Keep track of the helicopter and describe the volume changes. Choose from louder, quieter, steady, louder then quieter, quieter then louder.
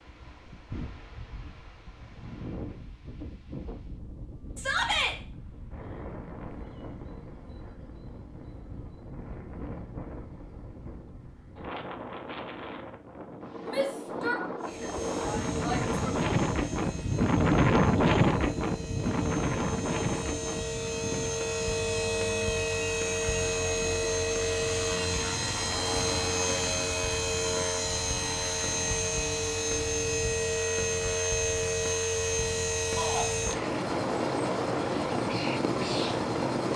louder.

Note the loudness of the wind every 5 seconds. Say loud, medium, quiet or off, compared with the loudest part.
quiet, quiet, quiet, loud, medium, off, off, off.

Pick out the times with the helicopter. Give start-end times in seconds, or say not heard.
14.6-36.7.